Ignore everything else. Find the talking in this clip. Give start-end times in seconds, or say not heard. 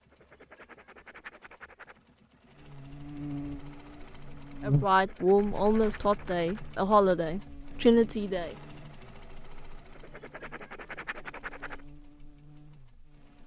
4.6-8.6.